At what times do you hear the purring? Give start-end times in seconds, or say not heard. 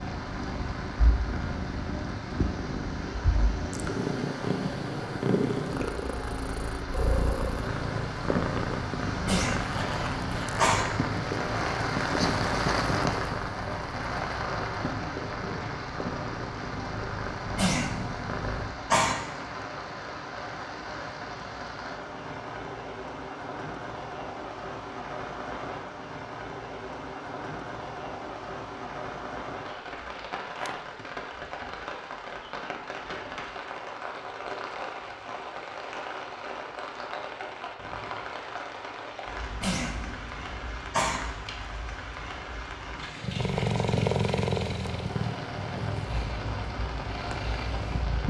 0.0-18.8, 43.2-48.2.